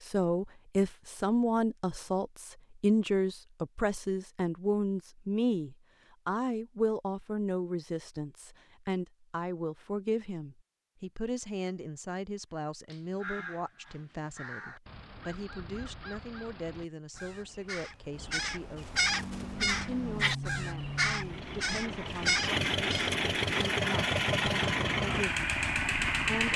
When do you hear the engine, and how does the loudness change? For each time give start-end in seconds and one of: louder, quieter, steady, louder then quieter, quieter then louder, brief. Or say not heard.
18.9-26.5 louder.